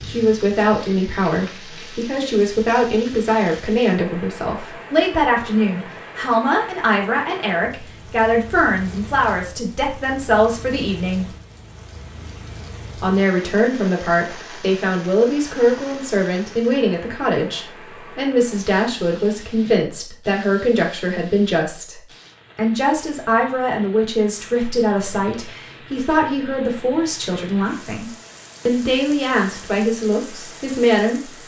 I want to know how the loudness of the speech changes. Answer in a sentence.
The loudness of the speech stays about the same.